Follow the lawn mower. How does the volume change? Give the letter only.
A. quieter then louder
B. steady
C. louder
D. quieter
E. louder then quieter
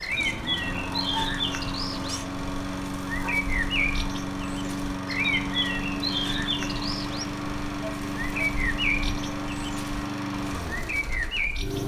B.